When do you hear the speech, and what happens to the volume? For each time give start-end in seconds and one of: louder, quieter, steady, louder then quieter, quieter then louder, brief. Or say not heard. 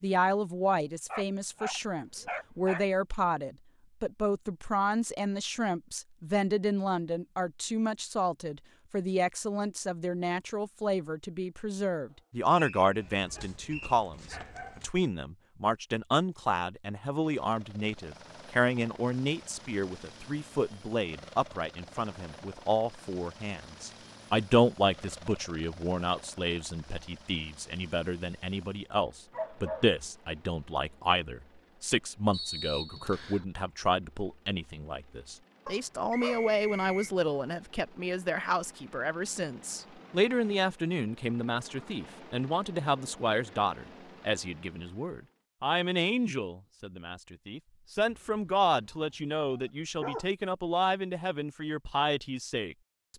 0.0-52.8 steady.